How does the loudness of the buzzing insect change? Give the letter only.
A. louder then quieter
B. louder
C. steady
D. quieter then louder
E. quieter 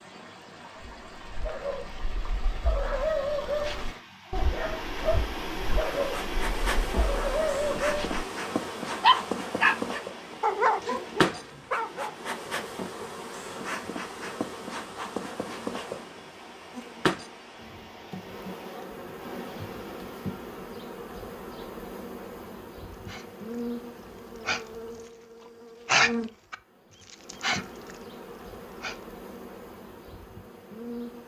E.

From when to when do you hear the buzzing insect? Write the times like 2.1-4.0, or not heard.
6.0-31.2.